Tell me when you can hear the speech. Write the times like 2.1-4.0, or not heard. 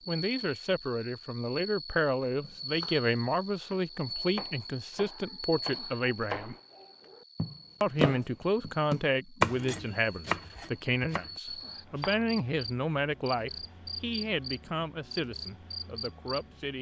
0.1-6.5, 7.8-16.7.